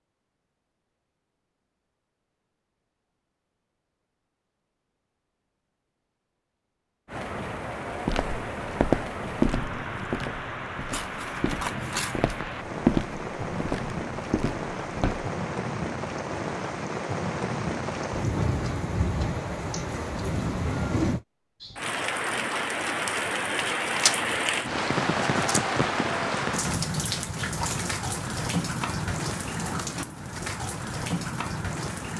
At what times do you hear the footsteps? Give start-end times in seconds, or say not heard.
8.1-15.2.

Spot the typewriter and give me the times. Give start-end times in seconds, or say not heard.
not heard.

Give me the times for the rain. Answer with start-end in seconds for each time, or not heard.
7.0-32.1.